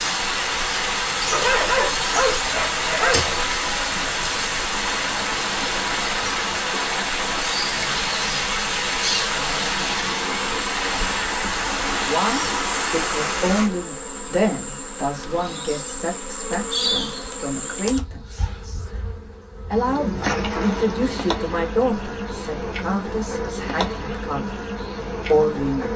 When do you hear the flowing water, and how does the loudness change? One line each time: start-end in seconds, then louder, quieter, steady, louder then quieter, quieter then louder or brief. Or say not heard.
0.0-13.7 steady.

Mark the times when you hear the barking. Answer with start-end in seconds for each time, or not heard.
1.3-3.4.